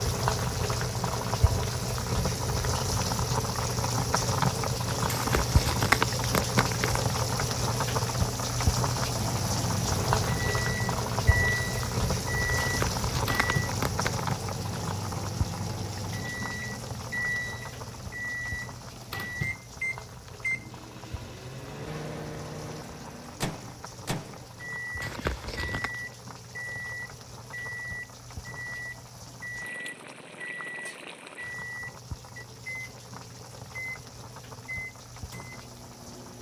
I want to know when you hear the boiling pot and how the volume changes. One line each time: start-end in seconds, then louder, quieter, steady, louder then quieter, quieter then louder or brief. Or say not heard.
0.0-36.3 quieter.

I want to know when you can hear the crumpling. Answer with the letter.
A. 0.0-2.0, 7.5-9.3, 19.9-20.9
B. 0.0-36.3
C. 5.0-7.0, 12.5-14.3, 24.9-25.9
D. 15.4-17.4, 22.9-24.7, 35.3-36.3
C.